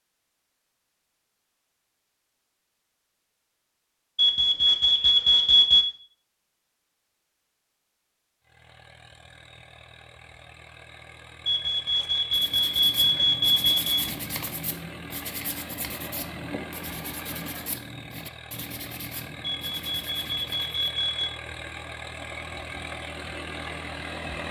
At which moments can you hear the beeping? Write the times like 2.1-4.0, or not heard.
4.2-5.8, 11.4-14.0, 19.4-21.3.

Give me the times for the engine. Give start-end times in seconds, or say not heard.
8.4-24.4.